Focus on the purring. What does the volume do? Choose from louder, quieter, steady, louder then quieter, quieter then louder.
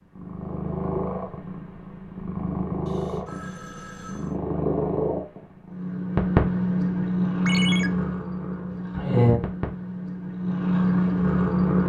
louder.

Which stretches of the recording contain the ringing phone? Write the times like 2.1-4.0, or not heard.
2.9-4.3, 7.5-7.9.